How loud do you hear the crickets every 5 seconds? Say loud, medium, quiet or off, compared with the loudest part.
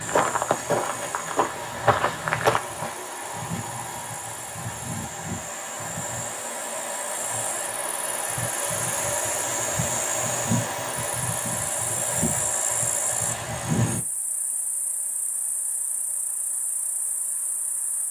medium, loud, loud, quiet.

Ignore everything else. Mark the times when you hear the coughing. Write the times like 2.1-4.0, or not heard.
not heard.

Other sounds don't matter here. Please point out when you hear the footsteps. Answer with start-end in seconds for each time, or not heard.
0.0-2.6.